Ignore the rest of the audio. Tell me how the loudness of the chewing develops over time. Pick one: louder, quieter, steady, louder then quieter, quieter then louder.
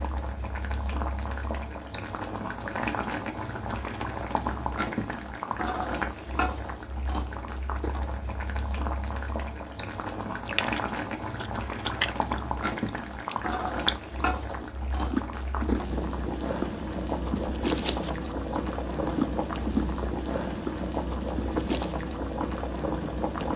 steady.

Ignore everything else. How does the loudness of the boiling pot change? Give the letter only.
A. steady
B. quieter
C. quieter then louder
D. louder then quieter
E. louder
A.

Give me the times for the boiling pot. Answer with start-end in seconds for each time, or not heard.
0.0-23.5.